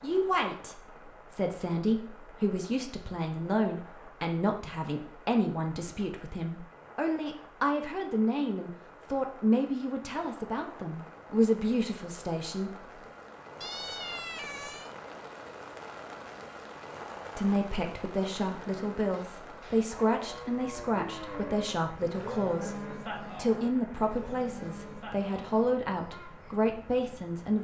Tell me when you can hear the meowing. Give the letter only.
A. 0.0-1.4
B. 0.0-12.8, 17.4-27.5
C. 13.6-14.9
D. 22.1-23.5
C.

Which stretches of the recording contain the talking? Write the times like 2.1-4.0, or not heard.
0.0-12.8, 17.4-27.5.